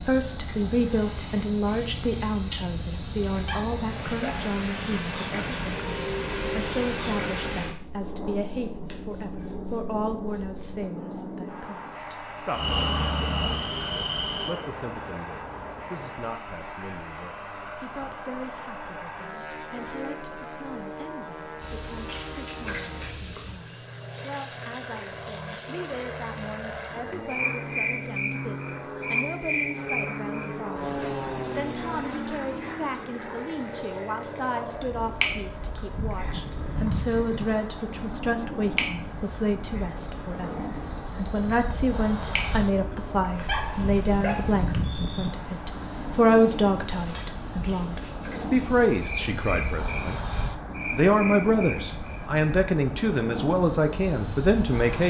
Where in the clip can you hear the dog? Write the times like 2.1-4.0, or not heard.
3.4-4.5, 43.4-44.5.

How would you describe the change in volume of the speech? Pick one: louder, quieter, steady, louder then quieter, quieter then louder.
quieter then louder.